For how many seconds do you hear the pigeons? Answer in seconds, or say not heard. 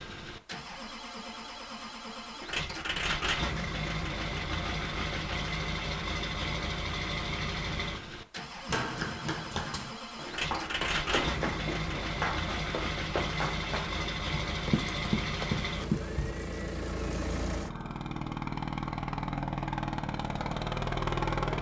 not heard.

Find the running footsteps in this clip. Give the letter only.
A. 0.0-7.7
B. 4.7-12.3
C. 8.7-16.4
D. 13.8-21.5
C.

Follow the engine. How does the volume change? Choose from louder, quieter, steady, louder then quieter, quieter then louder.
steady.